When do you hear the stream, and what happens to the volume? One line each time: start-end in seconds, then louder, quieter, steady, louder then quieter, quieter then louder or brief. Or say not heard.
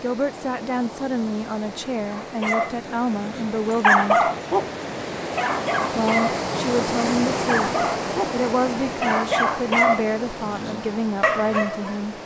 0.0-12.2 louder then quieter.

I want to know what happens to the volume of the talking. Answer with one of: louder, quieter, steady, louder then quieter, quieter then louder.
steady.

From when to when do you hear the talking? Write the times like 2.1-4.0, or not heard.
0.0-4.3, 6.0-12.2.